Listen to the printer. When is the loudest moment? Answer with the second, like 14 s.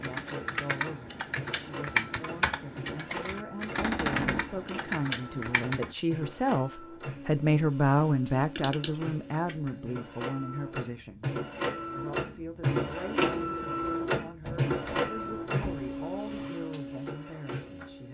13 s.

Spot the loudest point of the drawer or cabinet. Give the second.
4 s.